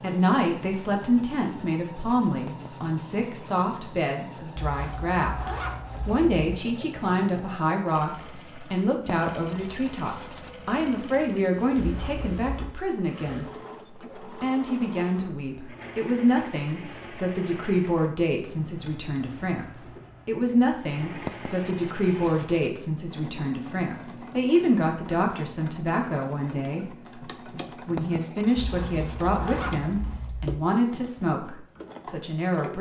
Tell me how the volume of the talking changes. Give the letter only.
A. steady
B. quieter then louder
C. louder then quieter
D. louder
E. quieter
A.